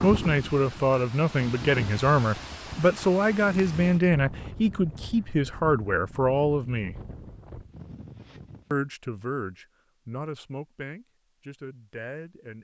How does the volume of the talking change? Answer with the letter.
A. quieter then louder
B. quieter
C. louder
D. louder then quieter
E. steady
B.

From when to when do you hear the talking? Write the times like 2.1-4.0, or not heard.
0.0-7.0, 8.7-12.5.